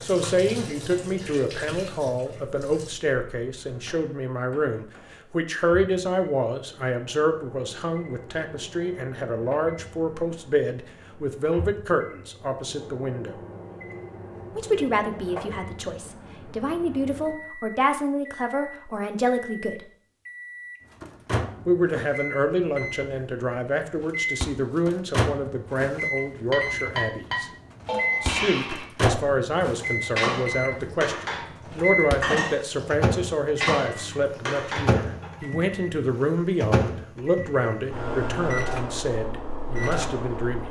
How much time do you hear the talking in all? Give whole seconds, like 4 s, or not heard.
37 s.